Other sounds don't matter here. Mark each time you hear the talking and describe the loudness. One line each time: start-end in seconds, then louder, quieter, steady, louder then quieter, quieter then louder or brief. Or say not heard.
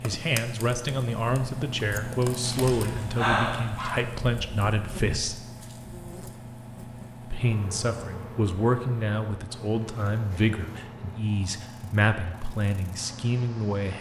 0.0-5.3 steady
7.2-13.9 steady.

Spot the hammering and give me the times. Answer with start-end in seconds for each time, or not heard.
not heard.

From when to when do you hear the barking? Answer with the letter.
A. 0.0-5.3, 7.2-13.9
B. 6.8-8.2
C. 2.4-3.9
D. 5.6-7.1
C.